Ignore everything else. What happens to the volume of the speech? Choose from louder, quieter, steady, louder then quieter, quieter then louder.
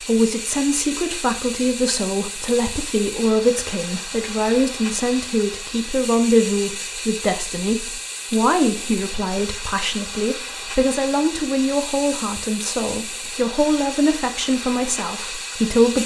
steady.